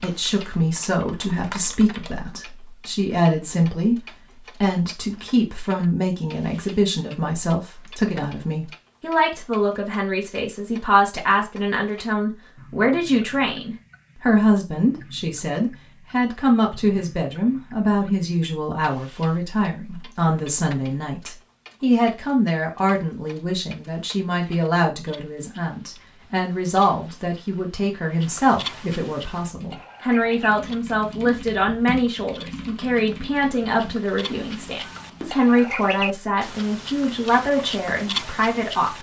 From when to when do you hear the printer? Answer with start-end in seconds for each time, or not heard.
not heard.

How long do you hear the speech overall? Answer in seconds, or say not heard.
38 s.